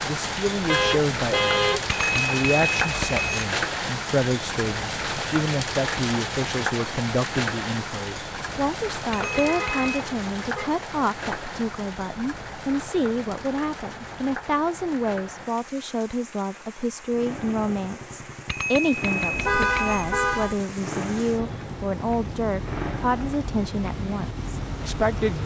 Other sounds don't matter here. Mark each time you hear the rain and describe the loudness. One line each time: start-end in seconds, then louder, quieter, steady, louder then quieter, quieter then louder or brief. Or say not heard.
0.0-25.4 quieter then louder.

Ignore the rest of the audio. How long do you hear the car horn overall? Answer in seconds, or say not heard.
4 s.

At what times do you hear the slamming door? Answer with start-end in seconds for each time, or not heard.
not heard.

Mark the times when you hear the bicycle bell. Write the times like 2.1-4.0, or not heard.
1.9-3.5, 9.1-10.1, 18.4-20.1.